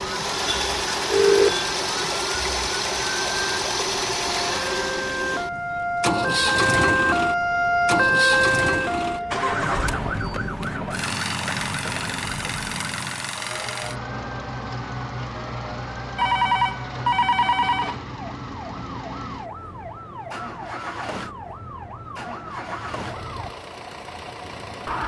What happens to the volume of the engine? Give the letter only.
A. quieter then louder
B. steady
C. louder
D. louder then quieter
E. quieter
E.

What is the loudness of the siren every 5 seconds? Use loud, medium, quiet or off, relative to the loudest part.
medium, loud, medium, quiet, quiet.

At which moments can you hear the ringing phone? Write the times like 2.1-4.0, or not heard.
0.5-1.6, 16.1-17.9.